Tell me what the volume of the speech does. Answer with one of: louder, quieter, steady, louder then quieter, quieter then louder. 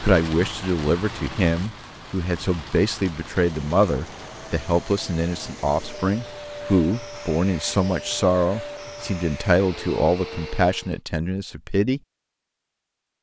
steady.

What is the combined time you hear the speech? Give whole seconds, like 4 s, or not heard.
12 s.